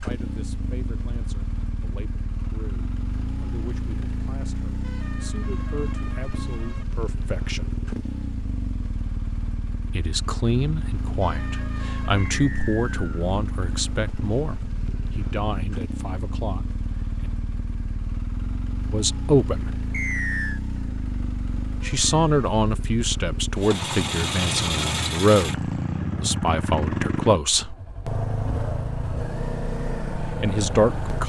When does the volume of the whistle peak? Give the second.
20 s.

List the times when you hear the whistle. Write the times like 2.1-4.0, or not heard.
12.3-13.3, 19.9-20.6.